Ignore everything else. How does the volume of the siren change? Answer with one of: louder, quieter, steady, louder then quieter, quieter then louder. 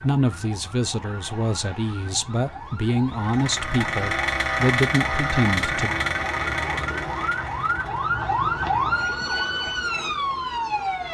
louder.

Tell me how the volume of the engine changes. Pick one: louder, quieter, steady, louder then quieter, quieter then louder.
quieter.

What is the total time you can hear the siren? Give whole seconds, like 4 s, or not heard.
11 s.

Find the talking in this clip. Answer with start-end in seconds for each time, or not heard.
0.0-6.0.